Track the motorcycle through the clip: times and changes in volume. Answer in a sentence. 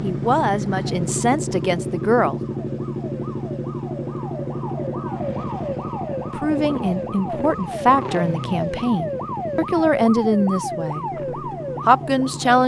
The motorcycle can be heard from 0.0 to 12.6 s, getting quieter.